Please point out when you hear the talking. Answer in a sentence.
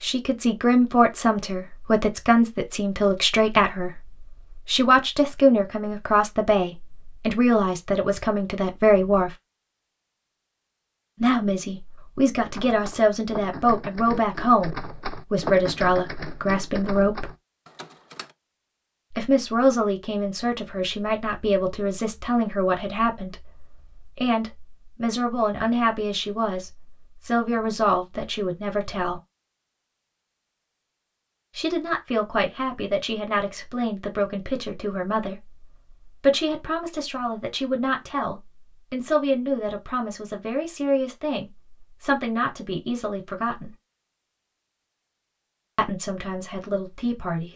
You can hear the talking from 0.0 to 9.3 s, from 11.2 to 17.3 s, from 19.1 to 29.2 s, from 31.6 to 43.7 s and from 45.8 to 47.5 s.